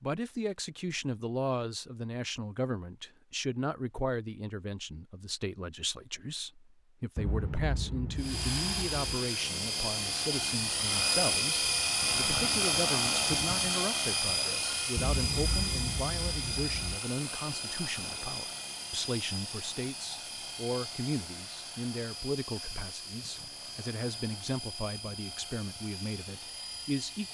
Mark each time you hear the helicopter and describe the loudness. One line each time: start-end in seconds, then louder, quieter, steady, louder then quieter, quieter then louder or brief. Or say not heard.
8.2-27.3 quieter.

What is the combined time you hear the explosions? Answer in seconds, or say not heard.
4 s.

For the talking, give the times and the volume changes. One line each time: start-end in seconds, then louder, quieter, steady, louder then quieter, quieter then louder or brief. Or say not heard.
0.0-27.3 steady.